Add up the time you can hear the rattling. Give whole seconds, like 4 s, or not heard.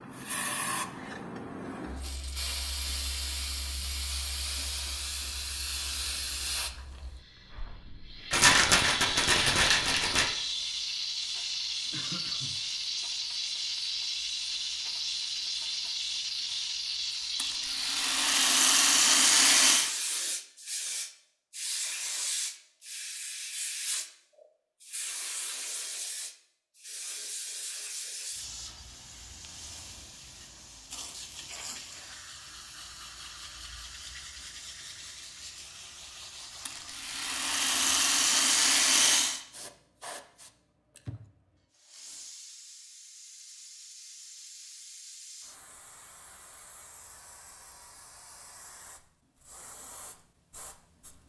7 s.